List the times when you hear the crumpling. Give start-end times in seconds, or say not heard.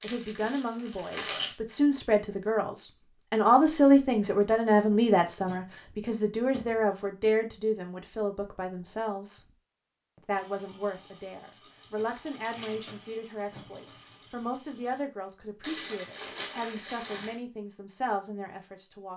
0.0-1.6, 15.6-17.4.